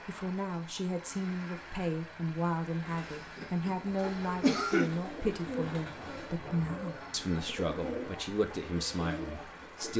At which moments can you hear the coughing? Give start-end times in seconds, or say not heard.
3.4-4.9.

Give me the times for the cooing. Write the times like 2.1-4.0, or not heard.
2.7-9.9.